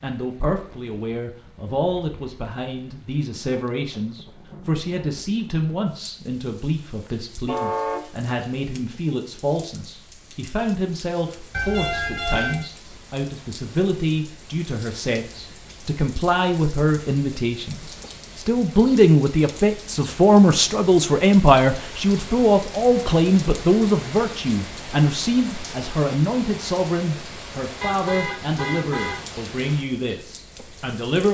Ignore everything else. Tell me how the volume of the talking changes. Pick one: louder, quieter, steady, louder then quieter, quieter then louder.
louder then quieter.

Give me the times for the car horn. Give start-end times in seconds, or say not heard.
7.0-8.1, 11.5-12.7, 27.8-29.4.